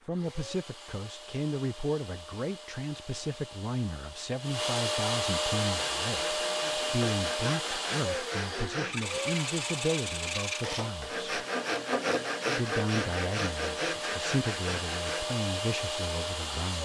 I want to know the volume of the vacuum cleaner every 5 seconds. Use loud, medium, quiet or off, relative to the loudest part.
medium, loud, medium, loud.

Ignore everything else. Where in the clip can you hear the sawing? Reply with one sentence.
You can hear the sawing from 5.7 to 15.3 s.